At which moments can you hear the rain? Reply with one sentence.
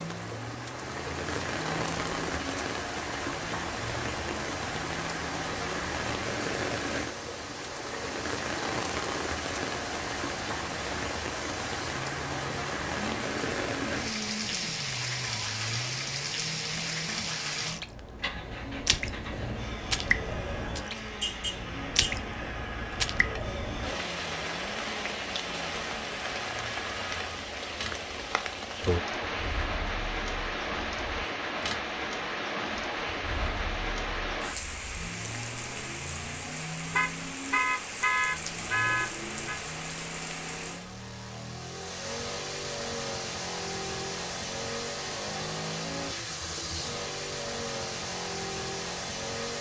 You can hear the rain from 0.0 to 40.9 s.